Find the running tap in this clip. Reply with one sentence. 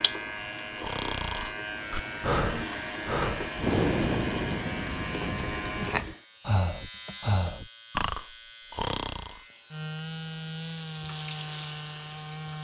The running tap can be heard from 0.0 to 6.2 s and from 9.4 to 12.5 s.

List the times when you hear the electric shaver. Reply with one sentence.
You can hear the electric shaver from 0.0 to 12.5 s.